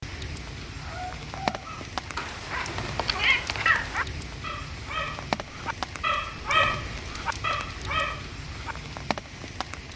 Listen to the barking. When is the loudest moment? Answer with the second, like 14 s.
7 s.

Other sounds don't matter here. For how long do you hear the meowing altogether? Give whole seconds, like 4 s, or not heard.
2 s.